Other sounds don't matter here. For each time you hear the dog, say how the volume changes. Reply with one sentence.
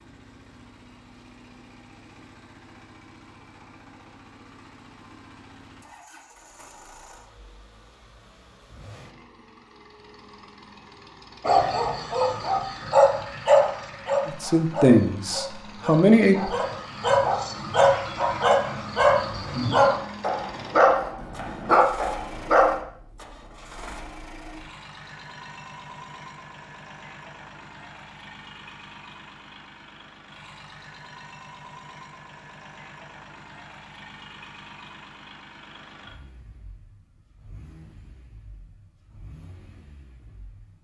The dog can be heard from 11.4 to 22.8 s, getting quieter then louder.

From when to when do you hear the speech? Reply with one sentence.
The speech can be heard from 14.2 to 16.6 s.